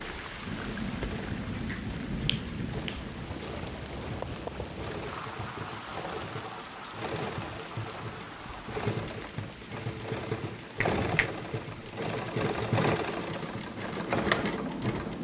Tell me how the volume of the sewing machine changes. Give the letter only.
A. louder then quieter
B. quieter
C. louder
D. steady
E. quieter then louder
C.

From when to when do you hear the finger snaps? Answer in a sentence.
You can hear the finger snaps from 1.1 to 3.1 s and from 10.8 to 11.8 s.